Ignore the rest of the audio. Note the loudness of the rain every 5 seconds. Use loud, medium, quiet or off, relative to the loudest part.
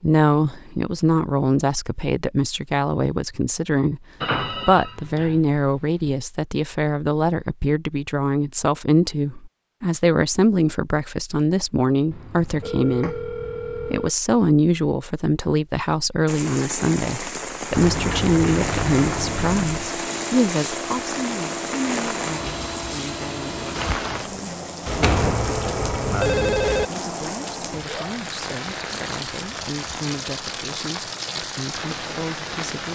off, off, off, loud, loud, loud, loud.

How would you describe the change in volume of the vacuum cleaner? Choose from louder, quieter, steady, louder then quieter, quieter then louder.
steady.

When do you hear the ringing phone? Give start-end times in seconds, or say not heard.
4.2-6.2, 12.1-14.1, 24.9-26.9.